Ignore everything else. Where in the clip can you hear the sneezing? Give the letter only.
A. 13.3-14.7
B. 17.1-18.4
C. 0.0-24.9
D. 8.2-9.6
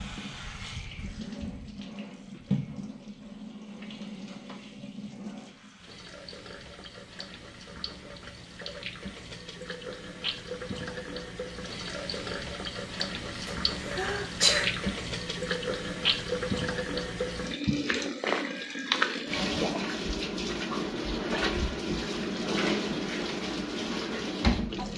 A.